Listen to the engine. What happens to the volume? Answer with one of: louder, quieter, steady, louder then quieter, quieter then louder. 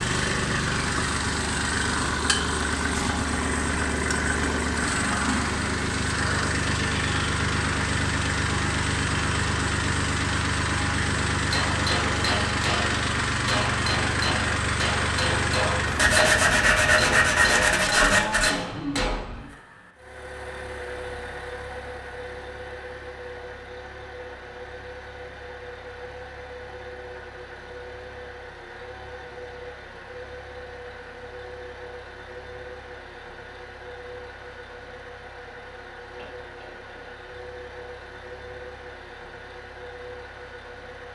quieter.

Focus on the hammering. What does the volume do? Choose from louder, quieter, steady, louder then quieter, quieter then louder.
steady.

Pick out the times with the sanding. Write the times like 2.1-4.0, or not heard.
15.9-18.5.